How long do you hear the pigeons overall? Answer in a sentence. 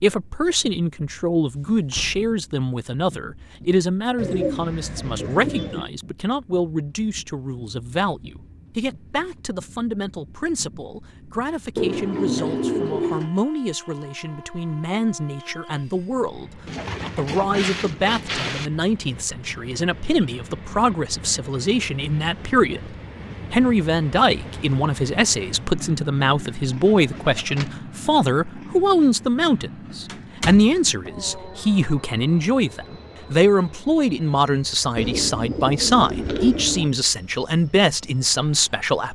The pigeons can be heard for 8 seconds in total.